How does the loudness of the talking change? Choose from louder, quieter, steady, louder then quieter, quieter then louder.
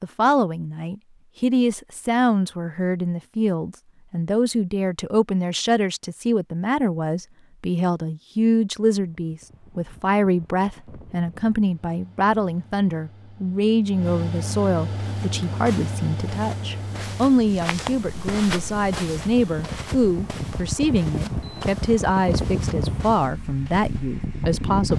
steady.